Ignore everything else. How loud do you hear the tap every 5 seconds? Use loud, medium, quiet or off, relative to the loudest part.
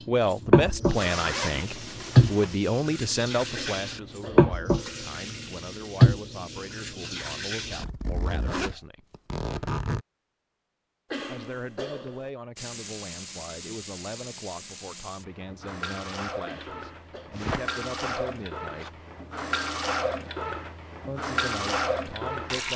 loud, loud, quiet, medium, medium.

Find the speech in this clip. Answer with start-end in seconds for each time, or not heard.
0.1-9.1, 11.2-19.0, 21.1-22.7.